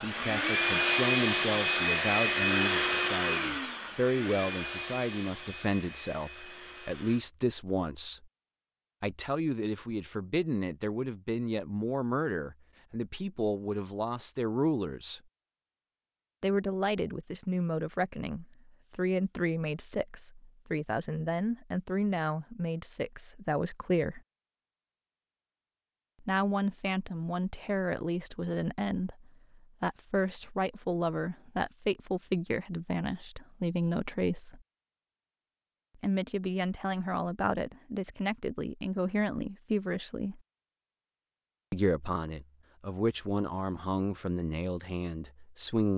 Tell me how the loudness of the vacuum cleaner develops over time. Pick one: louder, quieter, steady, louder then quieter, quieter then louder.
quieter.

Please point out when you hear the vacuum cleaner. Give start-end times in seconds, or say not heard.
0.0-7.2.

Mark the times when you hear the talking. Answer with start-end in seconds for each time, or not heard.
0.0-8.2, 9.0-15.2, 16.4-24.2, 26.2-34.6, 36.0-40.4, 41.7-45.9.